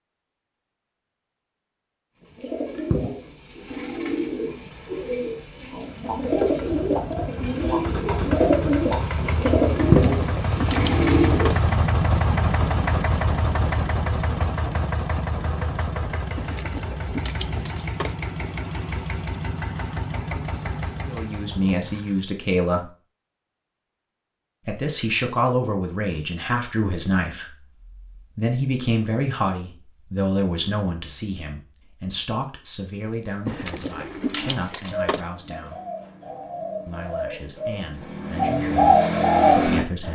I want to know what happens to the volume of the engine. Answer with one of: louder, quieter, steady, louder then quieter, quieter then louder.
louder then quieter.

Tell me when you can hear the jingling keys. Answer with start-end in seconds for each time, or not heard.
9.8-11.6, 16.4-18.1, 33.5-35.2.